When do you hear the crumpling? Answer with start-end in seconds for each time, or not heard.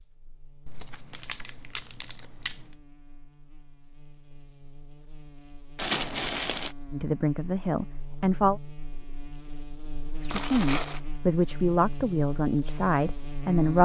0.7-2.8, 5.8-6.8, 10.3-11.0.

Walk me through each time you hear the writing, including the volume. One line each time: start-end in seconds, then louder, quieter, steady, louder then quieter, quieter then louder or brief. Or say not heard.
not heard.